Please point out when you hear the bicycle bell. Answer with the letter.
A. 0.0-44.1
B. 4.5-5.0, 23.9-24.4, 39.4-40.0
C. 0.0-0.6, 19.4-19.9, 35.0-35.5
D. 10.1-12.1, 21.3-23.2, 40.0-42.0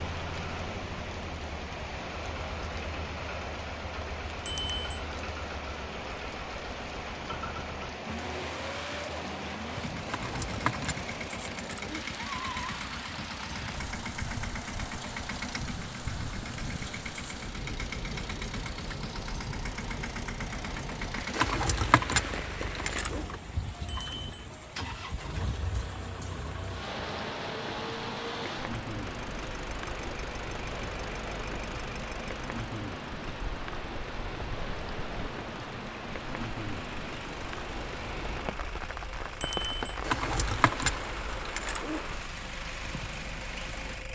B.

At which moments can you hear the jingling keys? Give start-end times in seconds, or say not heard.
10.1-12.1, 21.3-23.2, 40.0-42.0.